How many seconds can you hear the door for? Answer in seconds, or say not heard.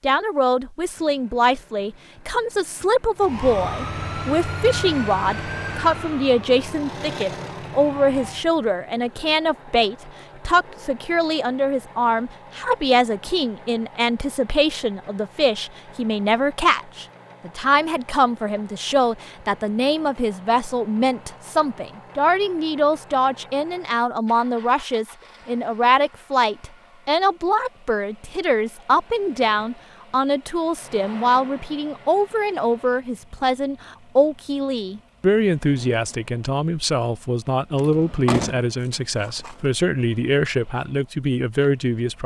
2 s.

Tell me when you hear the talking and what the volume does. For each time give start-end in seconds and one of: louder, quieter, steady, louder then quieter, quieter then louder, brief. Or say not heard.
0.0-42.2 steady.